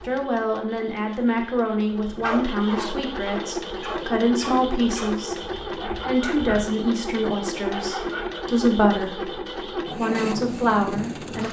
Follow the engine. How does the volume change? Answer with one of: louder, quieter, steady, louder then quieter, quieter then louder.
louder.